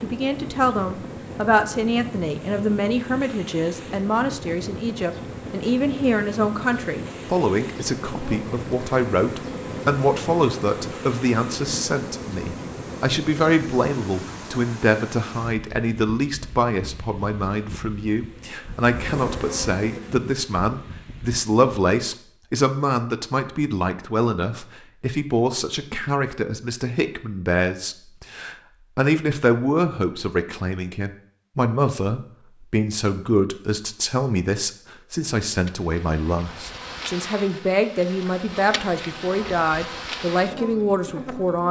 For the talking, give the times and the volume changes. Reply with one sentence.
The talking can be heard from 0.0 to 41.6 s, at a steady volume.